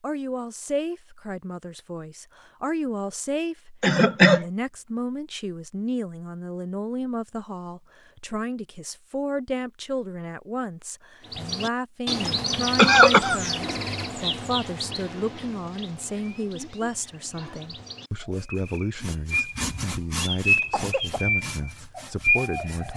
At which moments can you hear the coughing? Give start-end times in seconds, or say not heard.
3.8-4.5, 12.3-13.4, 20.6-21.2.